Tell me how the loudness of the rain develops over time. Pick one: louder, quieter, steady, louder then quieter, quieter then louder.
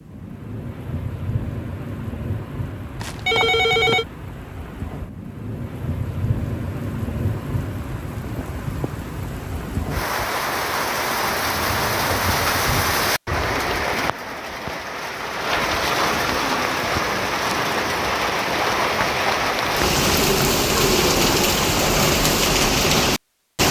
louder.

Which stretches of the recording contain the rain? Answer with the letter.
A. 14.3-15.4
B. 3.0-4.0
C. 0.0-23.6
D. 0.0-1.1
C.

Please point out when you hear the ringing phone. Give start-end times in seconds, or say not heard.
3.0-4.0.